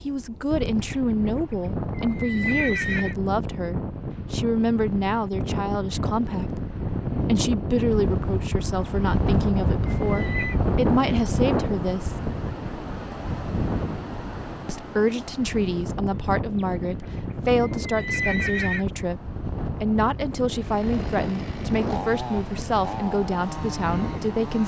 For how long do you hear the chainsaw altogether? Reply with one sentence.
You can hear the chainsaw for 4 seconds altogether.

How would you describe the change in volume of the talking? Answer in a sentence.
The volume of the talking stays about the same.